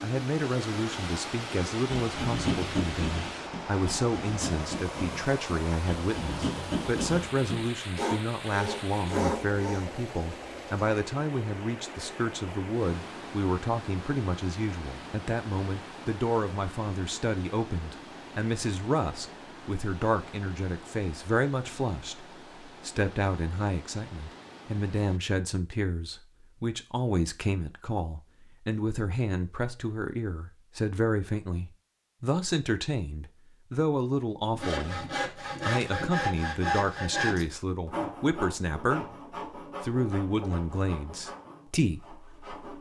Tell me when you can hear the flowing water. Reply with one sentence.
The flowing water can be heard from 0.0 to 25.2 s.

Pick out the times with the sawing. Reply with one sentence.
You can hear the sawing from 1.9 to 9.9 s and from 34.5 to 42.7 s.